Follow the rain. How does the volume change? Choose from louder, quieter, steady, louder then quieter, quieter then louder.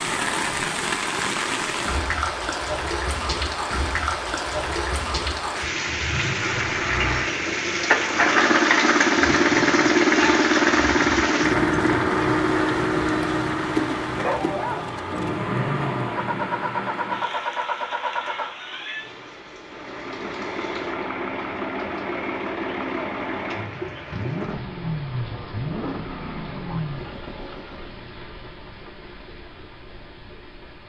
quieter.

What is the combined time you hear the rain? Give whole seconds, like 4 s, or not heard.
31 s.